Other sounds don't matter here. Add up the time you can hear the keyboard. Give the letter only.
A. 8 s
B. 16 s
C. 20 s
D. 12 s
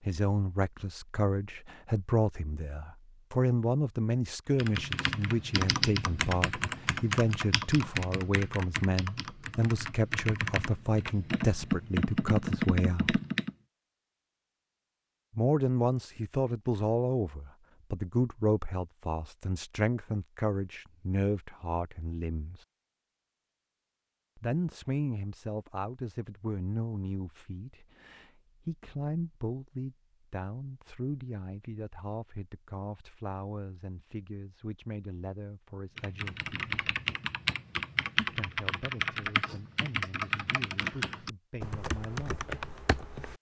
B.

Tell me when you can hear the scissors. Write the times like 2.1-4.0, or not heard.
not heard.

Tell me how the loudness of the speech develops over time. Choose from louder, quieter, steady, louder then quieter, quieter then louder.
quieter.